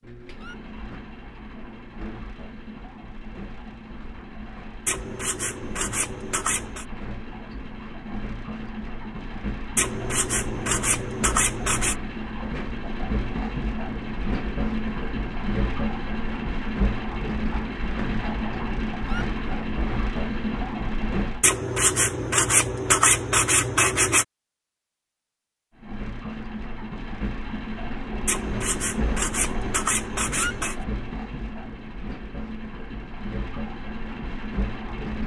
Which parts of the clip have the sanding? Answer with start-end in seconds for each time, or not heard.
4.8-6.8, 9.8-11.9, 21.4-24.2, 28.2-30.8.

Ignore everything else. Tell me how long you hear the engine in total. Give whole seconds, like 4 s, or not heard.
31 s.